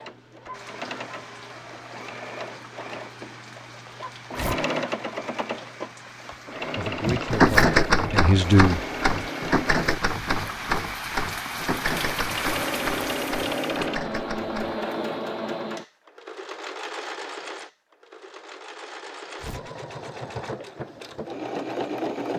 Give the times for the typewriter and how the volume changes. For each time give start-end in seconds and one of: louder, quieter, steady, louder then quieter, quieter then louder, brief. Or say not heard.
7.0-14.8 quieter.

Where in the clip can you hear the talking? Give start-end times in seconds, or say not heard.
6.8-8.8.